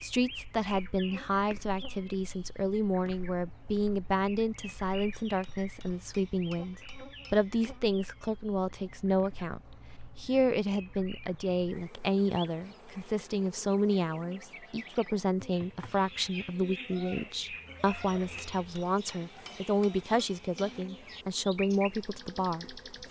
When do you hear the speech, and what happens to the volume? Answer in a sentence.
The speech can be heard from 0.0 to 22.8 s, at a steady volume.